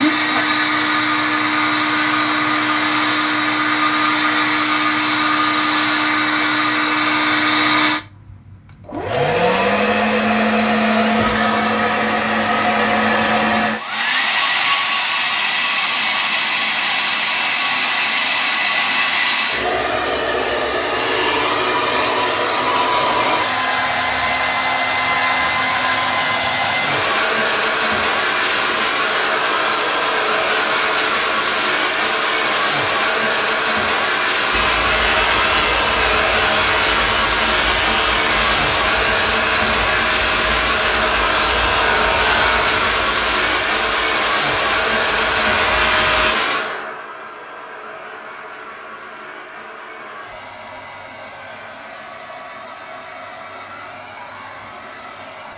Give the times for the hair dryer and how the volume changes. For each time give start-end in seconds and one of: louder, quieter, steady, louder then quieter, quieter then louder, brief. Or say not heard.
0.0-55.5 quieter.